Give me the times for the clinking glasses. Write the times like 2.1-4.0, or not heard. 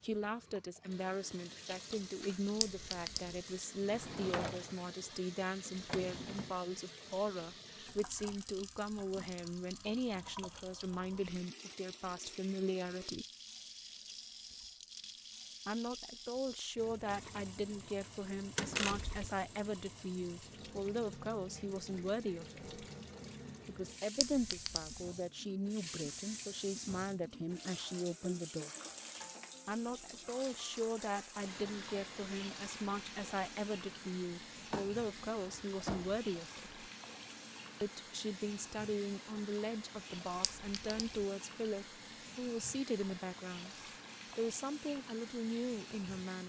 2.6-3.4, 24.2-24.9, 40.4-41.2.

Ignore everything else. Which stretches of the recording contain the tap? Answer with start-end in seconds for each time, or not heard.
0.0-46.4.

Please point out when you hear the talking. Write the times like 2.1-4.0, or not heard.
0.0-13.2, 15.7-22.8, 23.6-28.7, 29.6-36.9, 37.8-43.8, 44.4-46.4.